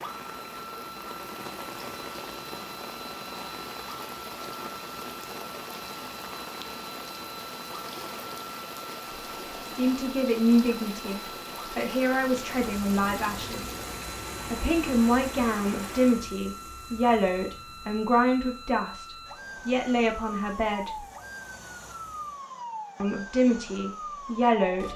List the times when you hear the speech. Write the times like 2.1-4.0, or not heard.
9.7-13.8, 14.5-21.1, 23.0-24.9.